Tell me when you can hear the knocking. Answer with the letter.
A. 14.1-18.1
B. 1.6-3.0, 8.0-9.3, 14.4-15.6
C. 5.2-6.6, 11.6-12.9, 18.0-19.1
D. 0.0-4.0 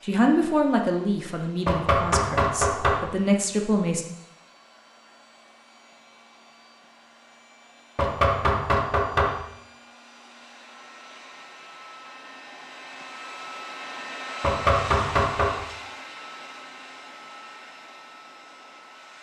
B.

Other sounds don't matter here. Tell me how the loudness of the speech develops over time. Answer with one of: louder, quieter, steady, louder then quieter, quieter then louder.
quieter then louder.